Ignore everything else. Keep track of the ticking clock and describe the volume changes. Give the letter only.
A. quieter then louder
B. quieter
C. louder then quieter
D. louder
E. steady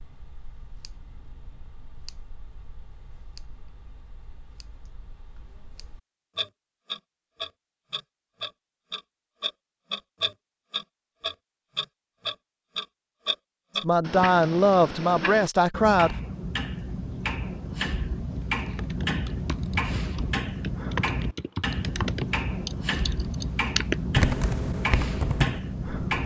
D.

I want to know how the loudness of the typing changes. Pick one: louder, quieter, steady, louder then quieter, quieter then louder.
louder.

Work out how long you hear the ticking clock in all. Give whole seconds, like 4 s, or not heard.
26 s.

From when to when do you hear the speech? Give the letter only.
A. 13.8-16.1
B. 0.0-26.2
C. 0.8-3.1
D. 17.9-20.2
A.